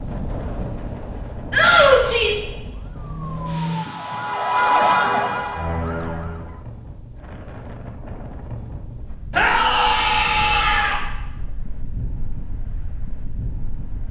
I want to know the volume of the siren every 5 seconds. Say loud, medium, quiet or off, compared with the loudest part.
loud, loud, off.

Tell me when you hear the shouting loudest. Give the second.
2 s.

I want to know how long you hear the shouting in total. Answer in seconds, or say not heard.
3 s.